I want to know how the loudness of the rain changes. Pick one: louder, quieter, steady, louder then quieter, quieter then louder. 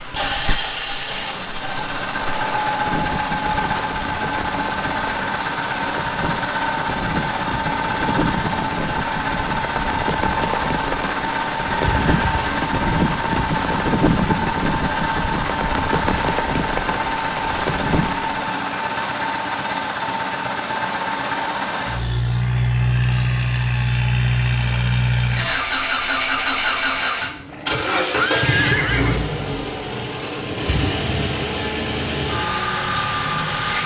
louder.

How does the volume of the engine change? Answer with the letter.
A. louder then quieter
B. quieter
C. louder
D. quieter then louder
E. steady
E.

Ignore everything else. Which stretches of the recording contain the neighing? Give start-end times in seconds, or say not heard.
11.8-12.6, 26.9-29.2.